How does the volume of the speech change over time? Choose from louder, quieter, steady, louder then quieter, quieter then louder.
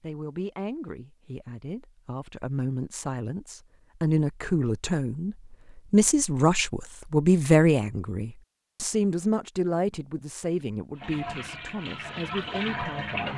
louder then quieter.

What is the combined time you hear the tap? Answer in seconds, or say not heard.
2 s.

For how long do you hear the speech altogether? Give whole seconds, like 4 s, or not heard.
13 s.